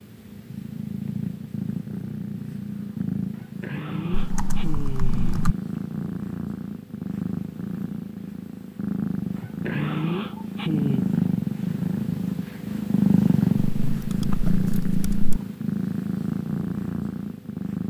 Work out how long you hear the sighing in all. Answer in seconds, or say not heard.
4 s.